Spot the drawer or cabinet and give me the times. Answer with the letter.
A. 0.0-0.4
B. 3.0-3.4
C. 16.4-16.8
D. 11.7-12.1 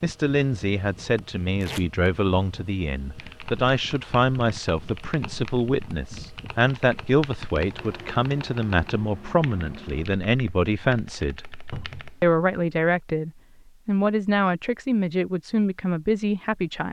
D.